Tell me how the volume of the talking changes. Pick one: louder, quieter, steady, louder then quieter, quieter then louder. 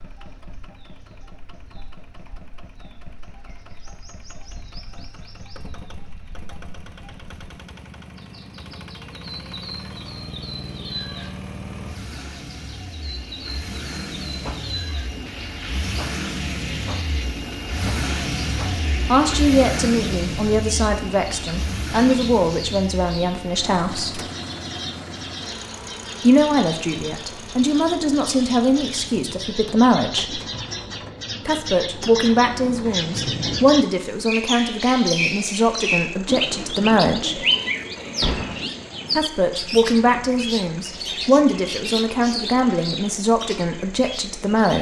steady.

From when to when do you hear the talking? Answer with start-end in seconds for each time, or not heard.
19.1-24.2, 26.2-30.4, 31.4-37.5, 39.1-44.7.